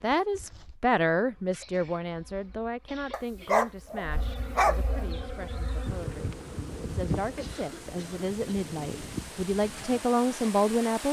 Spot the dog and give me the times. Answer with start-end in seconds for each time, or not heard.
3.1-5.0.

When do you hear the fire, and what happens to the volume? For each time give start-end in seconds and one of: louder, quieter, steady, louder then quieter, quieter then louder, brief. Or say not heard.
not heard.